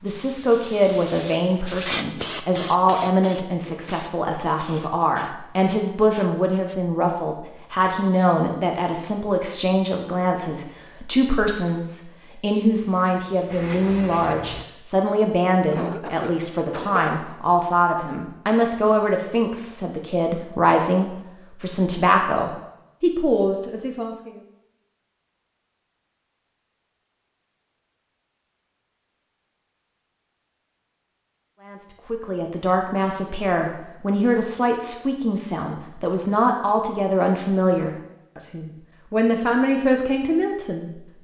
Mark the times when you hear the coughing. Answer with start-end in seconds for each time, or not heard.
15.7-17.1.